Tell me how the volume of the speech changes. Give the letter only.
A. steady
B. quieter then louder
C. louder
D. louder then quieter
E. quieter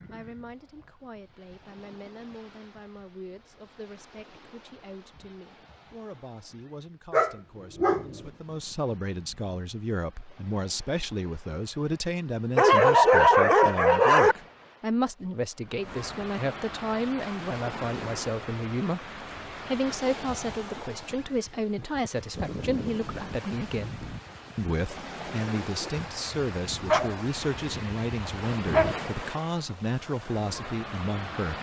C.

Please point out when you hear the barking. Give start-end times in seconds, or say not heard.
7.1-8.2, 12.6-14.3, 25.9-28.9.